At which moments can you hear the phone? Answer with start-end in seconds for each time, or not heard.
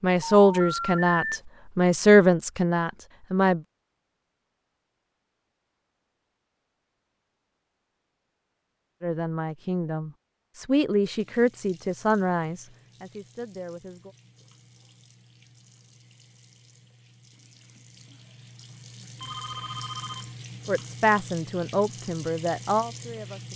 0.5-1.4, 19.2-20.3.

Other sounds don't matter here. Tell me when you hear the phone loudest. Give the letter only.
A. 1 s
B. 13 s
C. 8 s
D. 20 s
A.